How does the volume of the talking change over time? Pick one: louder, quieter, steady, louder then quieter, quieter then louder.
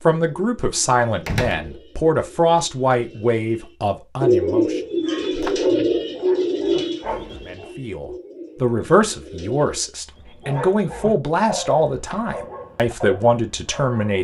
steady.